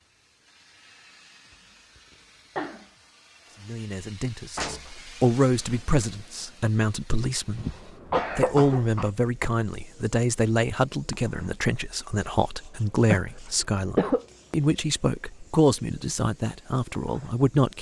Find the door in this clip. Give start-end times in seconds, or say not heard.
4.5-5.8.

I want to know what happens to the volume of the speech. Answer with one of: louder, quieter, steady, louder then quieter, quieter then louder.
steady.